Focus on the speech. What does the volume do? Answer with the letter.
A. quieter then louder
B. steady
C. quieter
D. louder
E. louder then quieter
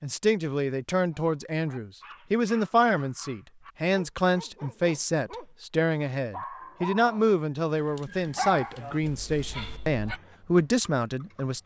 B.